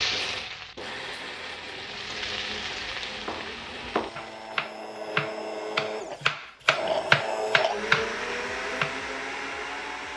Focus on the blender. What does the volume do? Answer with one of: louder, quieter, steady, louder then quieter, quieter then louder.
louder.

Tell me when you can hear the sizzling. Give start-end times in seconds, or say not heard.
0.0-4.7.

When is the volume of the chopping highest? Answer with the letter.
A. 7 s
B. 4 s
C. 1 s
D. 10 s
A.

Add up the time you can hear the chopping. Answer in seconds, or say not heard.
6 s.